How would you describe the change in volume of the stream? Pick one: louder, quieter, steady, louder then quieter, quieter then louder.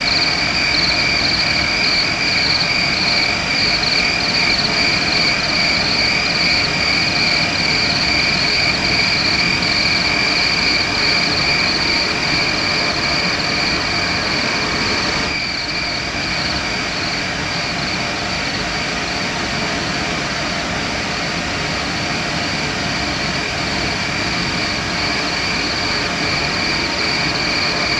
steady.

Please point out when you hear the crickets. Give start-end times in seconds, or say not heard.
0.0-27.9.